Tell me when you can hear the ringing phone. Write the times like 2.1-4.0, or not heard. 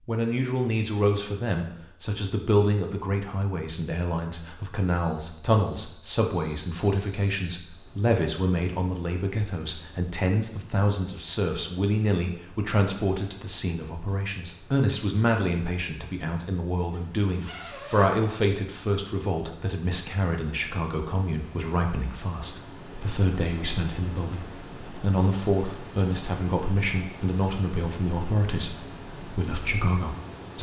not heard.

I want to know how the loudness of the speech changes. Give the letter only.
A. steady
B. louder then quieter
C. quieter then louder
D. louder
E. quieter
A.